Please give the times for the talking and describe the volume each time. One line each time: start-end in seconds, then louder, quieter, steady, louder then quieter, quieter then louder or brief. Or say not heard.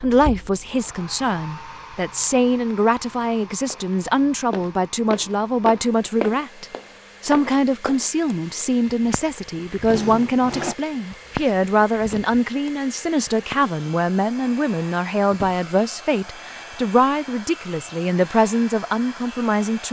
0.0-19.8 steady.